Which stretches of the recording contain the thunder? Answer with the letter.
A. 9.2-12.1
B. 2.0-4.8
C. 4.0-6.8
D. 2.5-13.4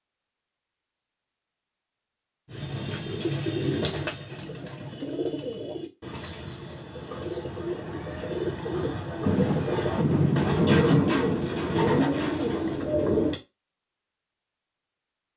A.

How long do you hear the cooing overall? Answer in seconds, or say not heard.
11 s.